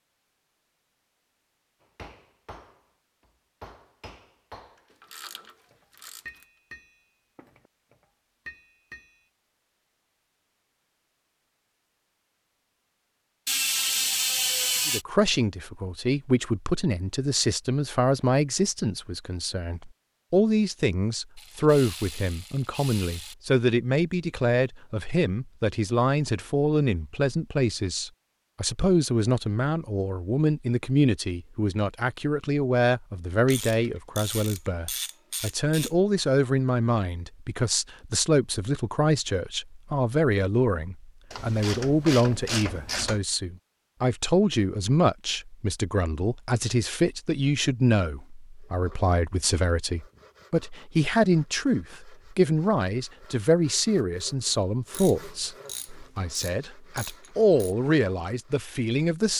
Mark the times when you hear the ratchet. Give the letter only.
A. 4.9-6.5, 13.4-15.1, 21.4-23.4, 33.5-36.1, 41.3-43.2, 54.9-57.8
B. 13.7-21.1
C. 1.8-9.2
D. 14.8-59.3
A.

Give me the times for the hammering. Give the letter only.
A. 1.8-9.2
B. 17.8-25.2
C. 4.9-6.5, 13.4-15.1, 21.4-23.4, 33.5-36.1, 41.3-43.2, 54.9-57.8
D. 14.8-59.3
A.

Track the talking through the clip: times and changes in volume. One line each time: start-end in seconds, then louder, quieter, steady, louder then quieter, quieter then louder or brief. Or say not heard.
14.8-59.3 steady.